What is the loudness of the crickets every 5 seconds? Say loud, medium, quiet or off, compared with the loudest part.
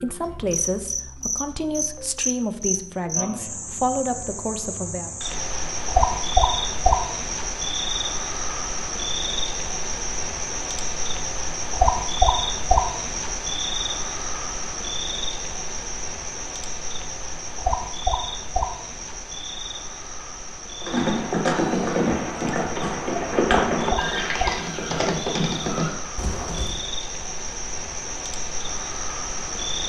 medium, loud, loud, medium, medium, medium.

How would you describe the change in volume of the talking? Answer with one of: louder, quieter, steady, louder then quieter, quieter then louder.
steady.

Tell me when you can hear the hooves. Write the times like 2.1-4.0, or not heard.
20.8-26.8.